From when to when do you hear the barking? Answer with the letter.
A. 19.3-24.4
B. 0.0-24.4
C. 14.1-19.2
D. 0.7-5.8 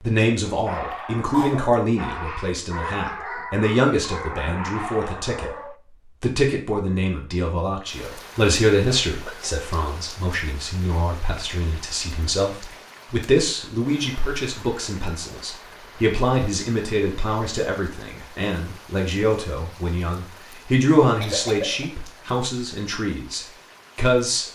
D.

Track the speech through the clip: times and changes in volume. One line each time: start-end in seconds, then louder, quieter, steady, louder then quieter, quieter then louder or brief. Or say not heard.
0.0-24.4 steady.